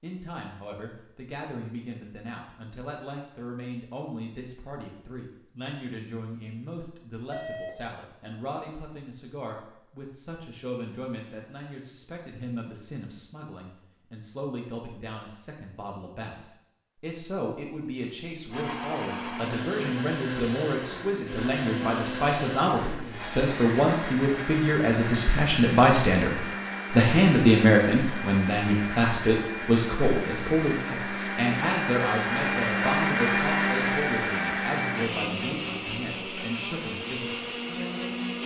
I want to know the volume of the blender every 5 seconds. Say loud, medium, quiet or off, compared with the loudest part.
off, off, off, medium, medium, medium, loud, medium.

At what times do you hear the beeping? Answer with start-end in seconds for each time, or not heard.
7.3-7.8.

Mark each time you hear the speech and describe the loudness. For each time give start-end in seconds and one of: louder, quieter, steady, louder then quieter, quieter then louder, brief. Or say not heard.
0.0-38.4 louder then quieter.